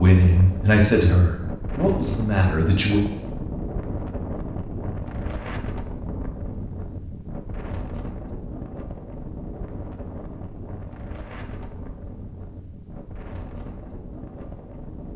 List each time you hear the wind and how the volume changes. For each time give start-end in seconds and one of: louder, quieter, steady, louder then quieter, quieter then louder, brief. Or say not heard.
0.0-15.1 quieter.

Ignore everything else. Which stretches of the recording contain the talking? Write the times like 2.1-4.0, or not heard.
0.0-3.0.